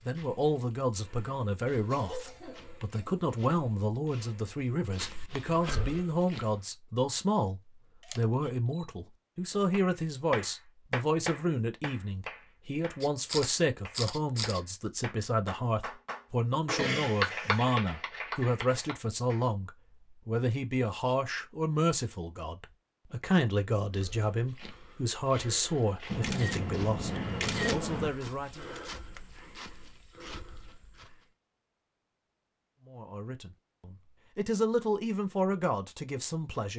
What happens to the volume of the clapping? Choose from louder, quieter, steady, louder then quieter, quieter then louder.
quieter then louder.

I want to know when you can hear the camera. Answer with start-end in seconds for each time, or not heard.
8.0-8.8, 13.0-14.6, 26.1-28.1.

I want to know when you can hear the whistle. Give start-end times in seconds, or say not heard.
not heard.